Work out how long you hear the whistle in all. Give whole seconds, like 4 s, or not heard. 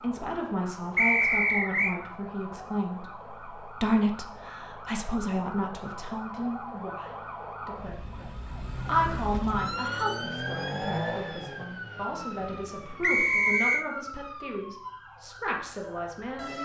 2 s.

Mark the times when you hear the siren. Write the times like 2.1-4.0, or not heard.
0.0-16.5.